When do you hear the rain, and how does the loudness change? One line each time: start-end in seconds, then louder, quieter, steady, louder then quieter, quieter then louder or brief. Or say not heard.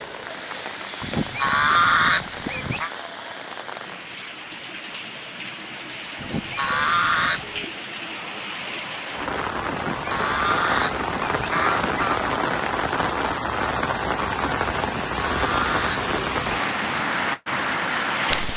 0.0-18.5 louder.